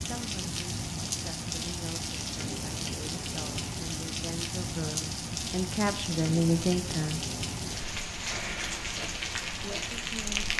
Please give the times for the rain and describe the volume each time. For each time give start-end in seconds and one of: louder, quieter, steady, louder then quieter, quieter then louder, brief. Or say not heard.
0.0-10.5 steady.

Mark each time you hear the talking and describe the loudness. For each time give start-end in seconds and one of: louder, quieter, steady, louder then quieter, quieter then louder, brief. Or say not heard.
0.0-7.2 louder
9.6-10.5 brief.